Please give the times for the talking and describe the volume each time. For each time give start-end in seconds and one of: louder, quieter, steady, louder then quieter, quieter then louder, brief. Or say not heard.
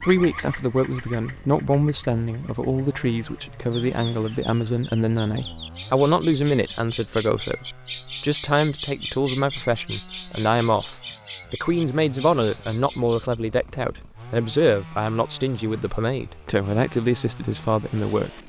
0.0-18.4 steady.